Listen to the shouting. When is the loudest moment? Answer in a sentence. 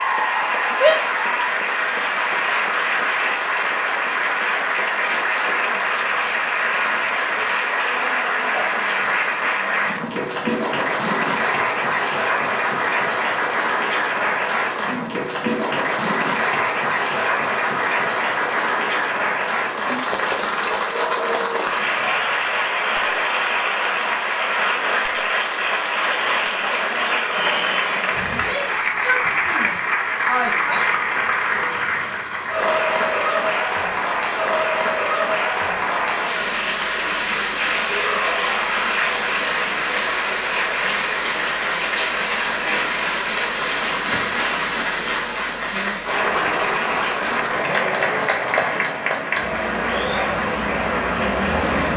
The volume of the shouting peaks at 1 second.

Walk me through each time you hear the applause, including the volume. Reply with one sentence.
You can hear the applause from 0.0 to 51.9 s, at a steady volume.